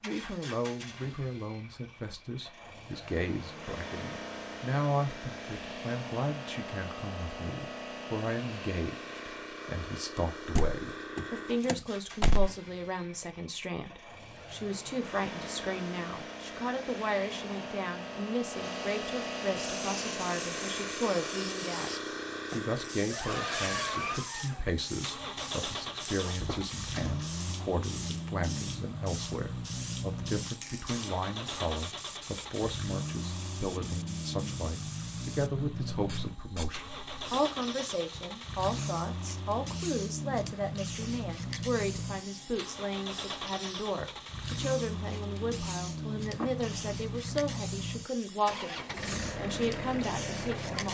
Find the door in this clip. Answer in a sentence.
You can hear the door from 10.6 to 12.5 s, from 26.2 to 27.2 s and from 46.4 to 47.0 s.